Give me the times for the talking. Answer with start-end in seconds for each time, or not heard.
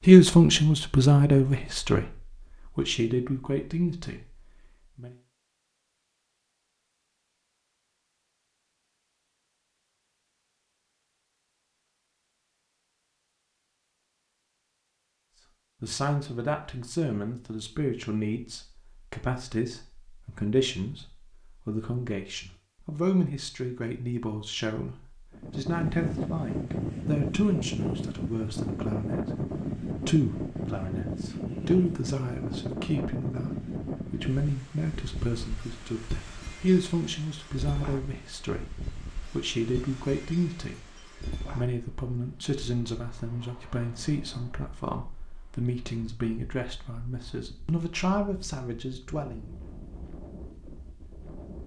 0.1-5.2, 15.8-49.5.